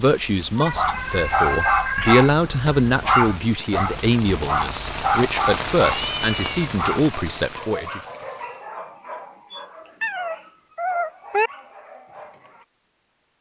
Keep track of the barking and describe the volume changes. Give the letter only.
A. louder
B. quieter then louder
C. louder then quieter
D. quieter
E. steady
D.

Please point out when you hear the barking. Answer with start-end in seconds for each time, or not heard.
0.7-12.7.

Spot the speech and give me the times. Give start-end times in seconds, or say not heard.
0.0-8.0.